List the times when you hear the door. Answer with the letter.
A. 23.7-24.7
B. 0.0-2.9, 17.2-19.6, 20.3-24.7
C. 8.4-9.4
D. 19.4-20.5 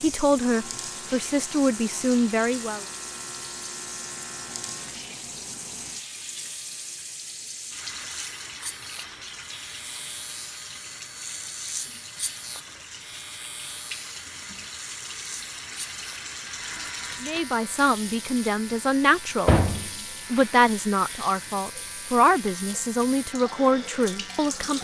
D.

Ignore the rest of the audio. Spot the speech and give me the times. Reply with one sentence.
You can hear the speech from 0.0 to 2.9 s, from 17.2 to 19.6 s and from 20.3 to 24.7 s.